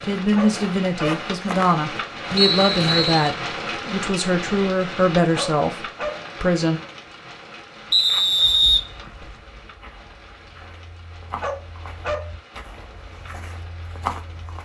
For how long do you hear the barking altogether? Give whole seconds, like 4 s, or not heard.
3 s.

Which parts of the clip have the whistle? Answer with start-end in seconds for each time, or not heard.
2.4-3.3, 7.9-9.3.